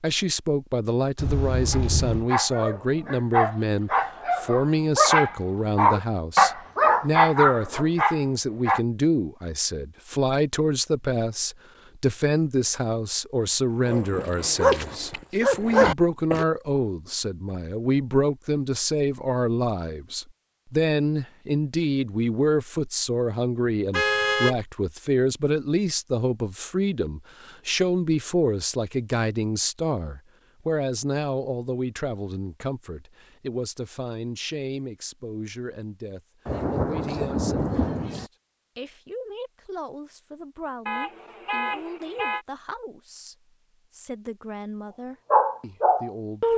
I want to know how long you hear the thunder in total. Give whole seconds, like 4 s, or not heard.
2 s.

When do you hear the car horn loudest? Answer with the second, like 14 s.
24 s.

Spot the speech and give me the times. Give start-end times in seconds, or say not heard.
0.0-46.5.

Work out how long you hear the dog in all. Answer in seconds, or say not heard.
11 s.